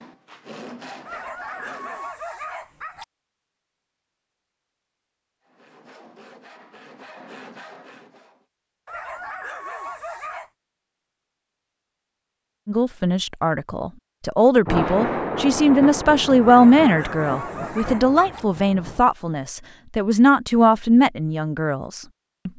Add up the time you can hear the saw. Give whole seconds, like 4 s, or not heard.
5 s.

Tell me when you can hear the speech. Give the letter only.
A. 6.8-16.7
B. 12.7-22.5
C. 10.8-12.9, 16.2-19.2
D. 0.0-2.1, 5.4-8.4
B.